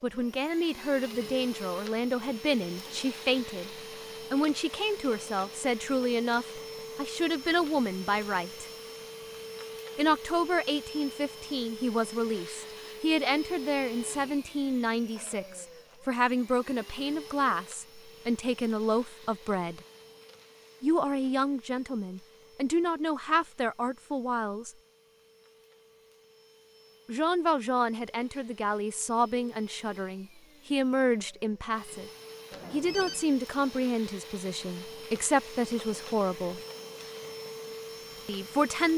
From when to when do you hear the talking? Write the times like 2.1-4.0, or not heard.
0.0-8.7, 9.9-19.8, 20.8-24.7, 27.1-32.1, 32.7-36.6, 38.2-38.9.